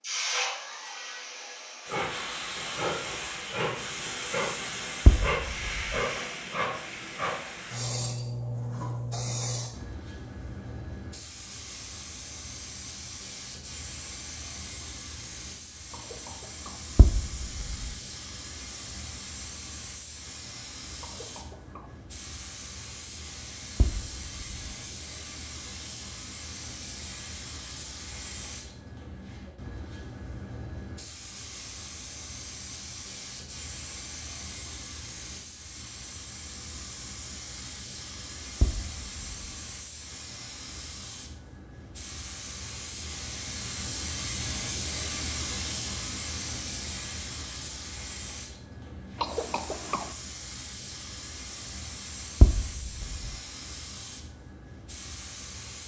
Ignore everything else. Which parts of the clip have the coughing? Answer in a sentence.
You can hear the coughing from 15.9 to 16.9 s, from 21.0 to 21.9 s and from 49.1 to 50.1 s.